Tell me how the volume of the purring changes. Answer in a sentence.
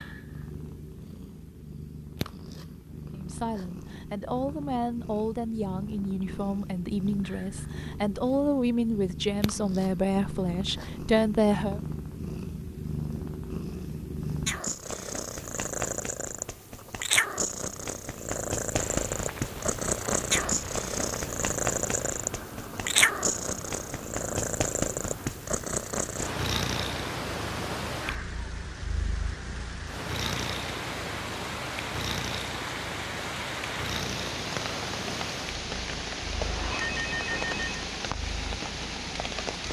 The loudness of the purring goes up, then down.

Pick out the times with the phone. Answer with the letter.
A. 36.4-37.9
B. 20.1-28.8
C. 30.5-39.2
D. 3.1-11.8
A.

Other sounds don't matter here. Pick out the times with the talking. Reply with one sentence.
You can hear the talking from 3.1 to 11.8 s.